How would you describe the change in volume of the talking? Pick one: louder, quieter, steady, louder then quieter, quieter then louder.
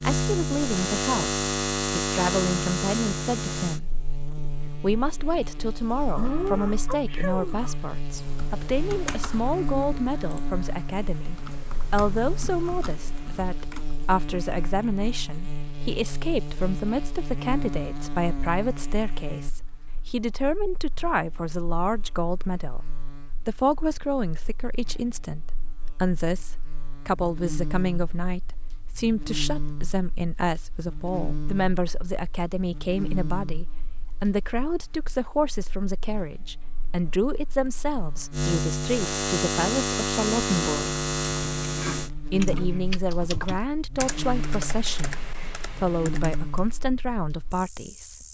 steady.